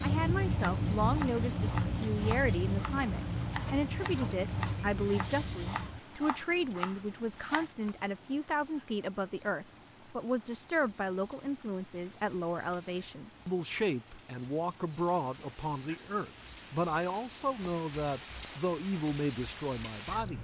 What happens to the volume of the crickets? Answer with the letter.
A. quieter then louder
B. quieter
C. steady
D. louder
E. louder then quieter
A.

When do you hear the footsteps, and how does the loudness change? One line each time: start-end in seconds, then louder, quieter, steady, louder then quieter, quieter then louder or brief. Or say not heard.
not heard.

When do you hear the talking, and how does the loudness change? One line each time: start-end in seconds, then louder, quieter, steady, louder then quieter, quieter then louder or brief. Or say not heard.
0.0-20.3 steady.